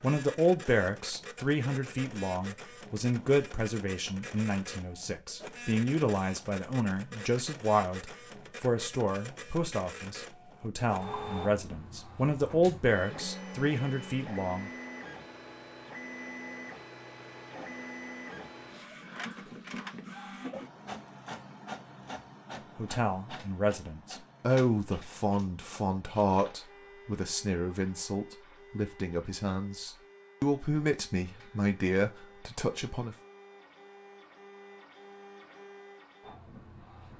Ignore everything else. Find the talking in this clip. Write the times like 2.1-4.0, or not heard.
0.0-14.7, 22.8-33.1.